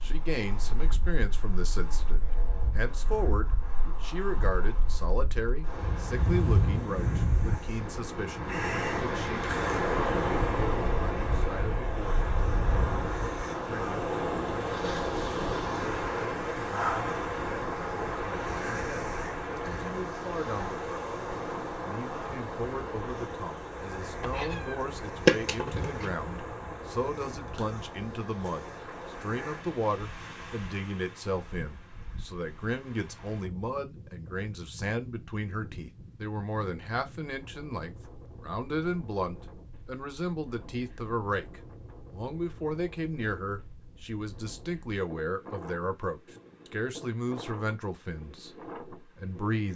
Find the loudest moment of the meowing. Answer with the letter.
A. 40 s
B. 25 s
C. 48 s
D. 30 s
B.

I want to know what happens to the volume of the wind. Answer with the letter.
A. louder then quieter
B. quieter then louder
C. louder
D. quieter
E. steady
D.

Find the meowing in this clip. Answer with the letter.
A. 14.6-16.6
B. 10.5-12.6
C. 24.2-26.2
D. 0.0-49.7
C.